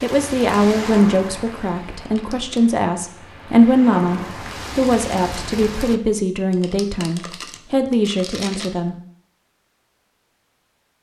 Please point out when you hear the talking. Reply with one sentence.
The talking can be heard from 0.0 to 8.9 s.